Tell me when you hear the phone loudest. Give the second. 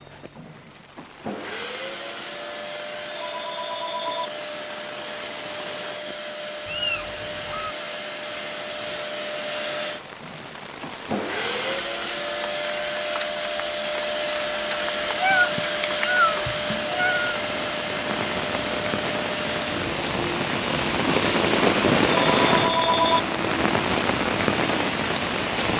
23 s.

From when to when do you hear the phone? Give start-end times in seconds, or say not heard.
3.1-4.3, 22.1-23.2.